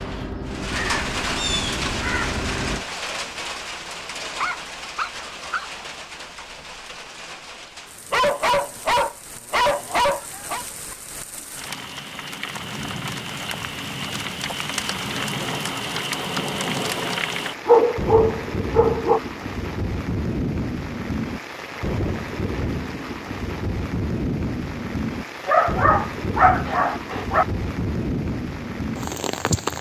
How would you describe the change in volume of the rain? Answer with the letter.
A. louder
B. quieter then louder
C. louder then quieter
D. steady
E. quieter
B.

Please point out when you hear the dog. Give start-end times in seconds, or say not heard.
4.3-5.7, 8.1-10.7, 17.6-19.2, 25.4-27.4.